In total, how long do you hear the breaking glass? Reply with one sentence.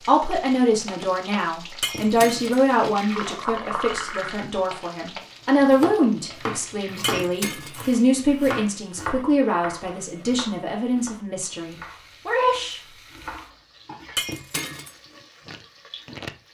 You can hear the breaking glass for 2 seconds altogether.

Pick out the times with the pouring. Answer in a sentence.
You can hear the pouring from 3.1 to 4.5 s.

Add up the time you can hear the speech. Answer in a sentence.
You can hear the speech for 13 seconds altogether.